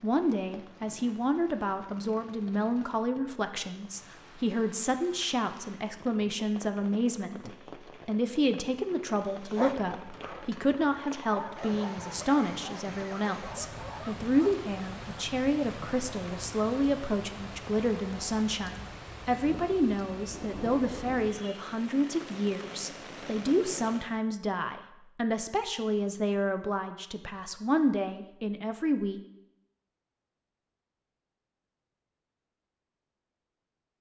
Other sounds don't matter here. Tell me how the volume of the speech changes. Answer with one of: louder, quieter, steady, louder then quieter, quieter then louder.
steady.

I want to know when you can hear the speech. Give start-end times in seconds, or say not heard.
0.0-29.2.